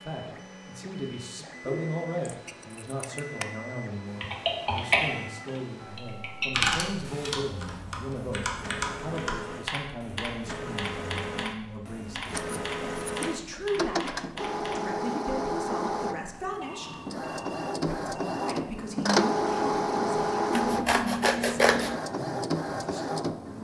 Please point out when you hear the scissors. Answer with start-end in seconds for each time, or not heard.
1.6-3.5, 12.2-13.2, 20.5-22.0.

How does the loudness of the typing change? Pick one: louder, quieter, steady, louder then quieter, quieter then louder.
quieter.